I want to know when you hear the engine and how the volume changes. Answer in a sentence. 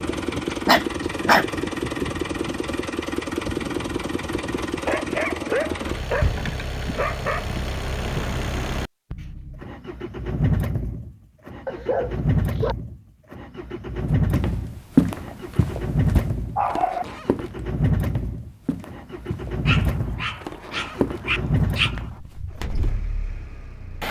You can hear the engine from 0.0 to 24.0 s, at a steady volume.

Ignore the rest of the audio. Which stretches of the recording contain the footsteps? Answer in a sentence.
You can hear the footsteps from 14.1 to 22.9 s.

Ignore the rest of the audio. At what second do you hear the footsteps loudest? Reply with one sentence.
The loudest moment of the footsteps is at 15 seconds.